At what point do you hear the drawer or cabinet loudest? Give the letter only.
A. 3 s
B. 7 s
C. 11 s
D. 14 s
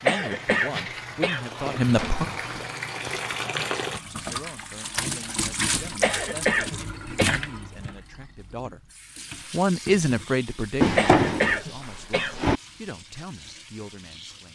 C.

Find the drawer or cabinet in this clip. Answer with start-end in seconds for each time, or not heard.
1.9-2.7, 5.6-6.0, 10.8-12.6.